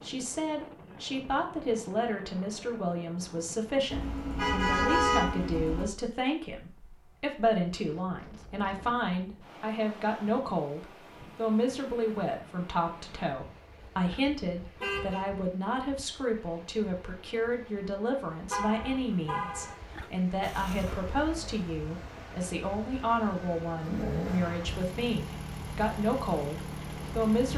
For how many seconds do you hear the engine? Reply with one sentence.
The engine can be heard for 7 seconds in total.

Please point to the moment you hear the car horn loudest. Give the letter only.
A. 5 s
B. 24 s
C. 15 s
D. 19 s
A.